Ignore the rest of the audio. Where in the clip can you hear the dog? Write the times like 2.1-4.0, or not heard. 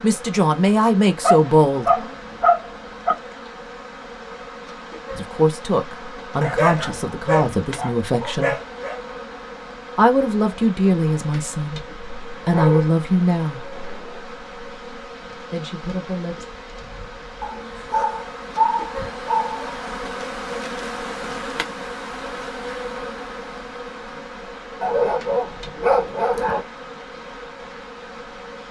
1.2-3.1, 6.4-8.9, 12.4-14.2, 17.4-19.9, 24.8-26.6.